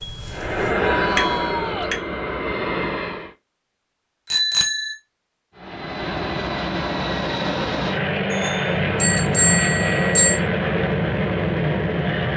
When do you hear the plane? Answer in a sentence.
You can hear the plane from 0.0 to 3.4 s and from 5.5 to 12.3 s.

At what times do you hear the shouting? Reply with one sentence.
The shouting can be heard from 0.6 to 1.9 s.